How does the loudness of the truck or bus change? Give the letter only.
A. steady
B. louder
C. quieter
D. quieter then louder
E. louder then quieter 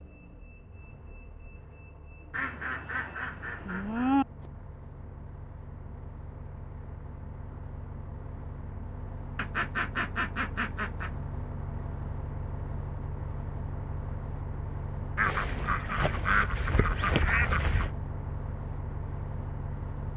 B.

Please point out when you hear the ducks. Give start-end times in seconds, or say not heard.
2.3-4.2, 9.3-11.1, 15.2-17.9.